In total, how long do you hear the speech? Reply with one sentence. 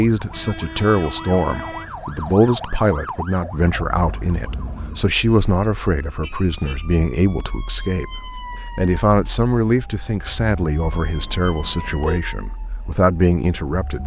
The speech can be heard for 14 seconds in total.